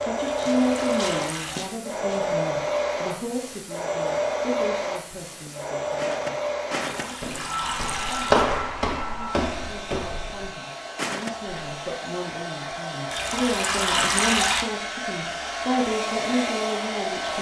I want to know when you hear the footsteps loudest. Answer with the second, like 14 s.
8 s.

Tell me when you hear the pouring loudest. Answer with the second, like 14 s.
14 s.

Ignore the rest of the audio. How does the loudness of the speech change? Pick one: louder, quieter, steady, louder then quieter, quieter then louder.
quieter then louder.